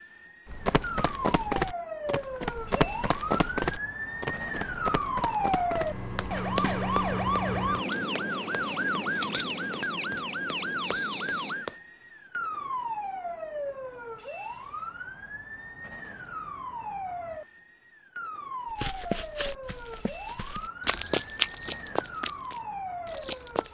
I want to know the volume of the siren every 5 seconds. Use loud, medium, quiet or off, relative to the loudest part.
medium, loud, medium, medium, medium.